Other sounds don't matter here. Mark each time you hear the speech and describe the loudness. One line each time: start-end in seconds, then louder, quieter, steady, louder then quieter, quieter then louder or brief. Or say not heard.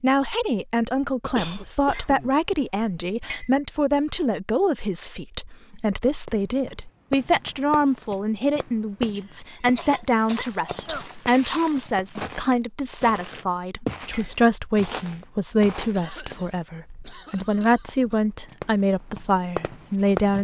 0.0-20.3 steady.